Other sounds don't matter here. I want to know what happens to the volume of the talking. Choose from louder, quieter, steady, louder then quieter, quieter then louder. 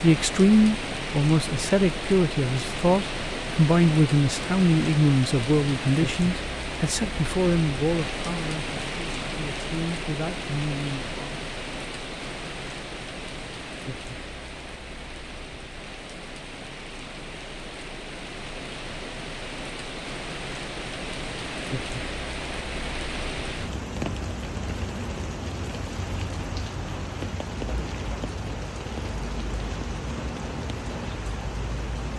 quieter.